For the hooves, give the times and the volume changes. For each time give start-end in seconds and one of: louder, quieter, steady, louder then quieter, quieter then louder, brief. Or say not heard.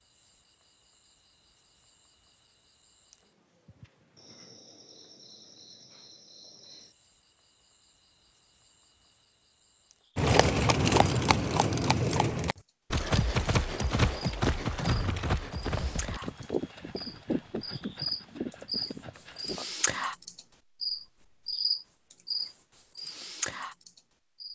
10.2-19.6 quieter.